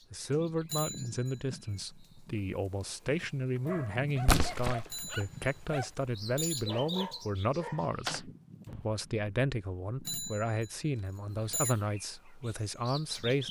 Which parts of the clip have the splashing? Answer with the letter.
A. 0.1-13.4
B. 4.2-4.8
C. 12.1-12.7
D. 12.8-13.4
B.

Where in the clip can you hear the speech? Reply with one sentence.
You can hear the speech from 0.1 to 13.4 s.